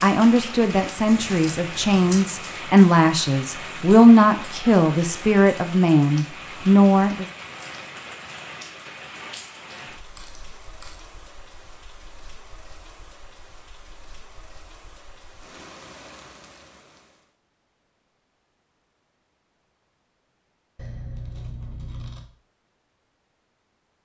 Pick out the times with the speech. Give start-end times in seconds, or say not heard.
0.0-7.2.